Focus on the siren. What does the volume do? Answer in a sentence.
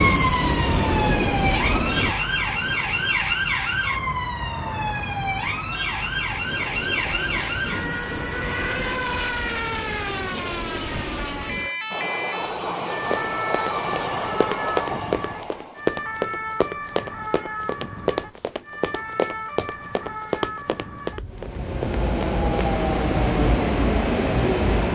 The volume of the siren goes down.